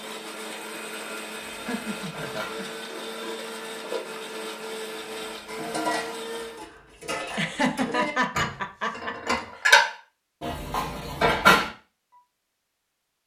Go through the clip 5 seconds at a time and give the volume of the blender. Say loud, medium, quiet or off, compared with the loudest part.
loud, loud, off.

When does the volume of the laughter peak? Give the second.
8 s.